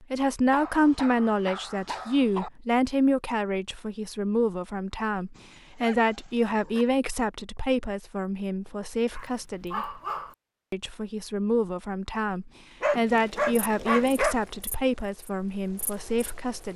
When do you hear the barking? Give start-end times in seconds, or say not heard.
0.5-2.5, 5.3-6.8, 9.1-10.3, 12.8-14.3.